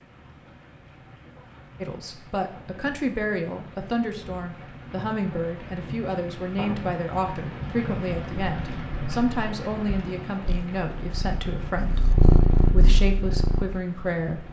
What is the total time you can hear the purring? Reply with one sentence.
You can hear the purring for 4 seconds altogether.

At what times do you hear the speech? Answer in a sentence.
The speech can be heard from 1.8 to 14.4 s.